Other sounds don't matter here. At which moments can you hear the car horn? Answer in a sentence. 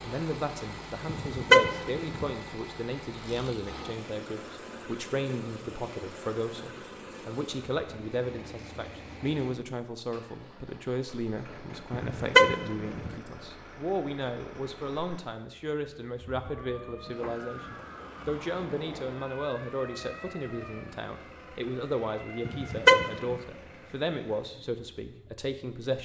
The car horn can be heard from 1.1 to 2.3 s, from 11.9 to 13.2 s and from 22.4 to 23.4 s.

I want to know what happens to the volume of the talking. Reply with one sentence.
The volume of the talking stays about the same.